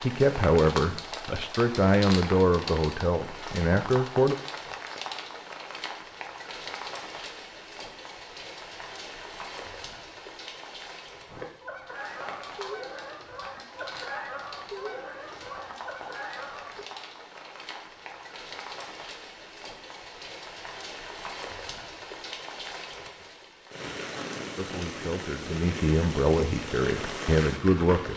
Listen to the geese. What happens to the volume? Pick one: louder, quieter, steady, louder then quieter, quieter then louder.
steady.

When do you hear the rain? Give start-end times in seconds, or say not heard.
0.0-28.1.